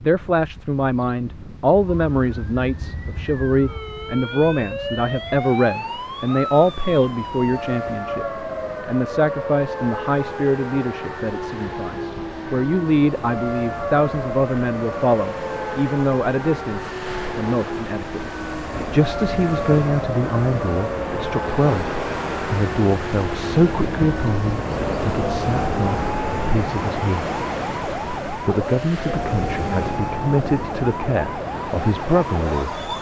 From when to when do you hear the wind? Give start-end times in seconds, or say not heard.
0.0-32.9.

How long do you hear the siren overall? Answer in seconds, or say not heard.
31 s.